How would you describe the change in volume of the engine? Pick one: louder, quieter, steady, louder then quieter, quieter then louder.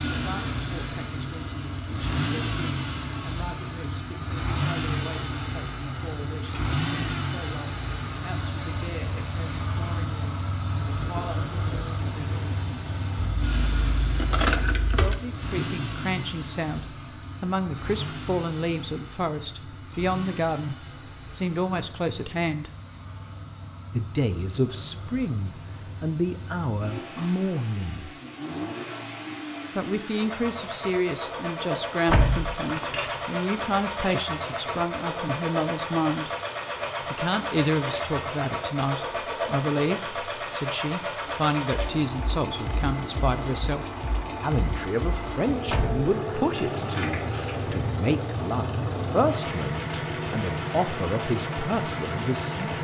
quieter then louder.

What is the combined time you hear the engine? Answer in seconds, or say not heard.
53 s.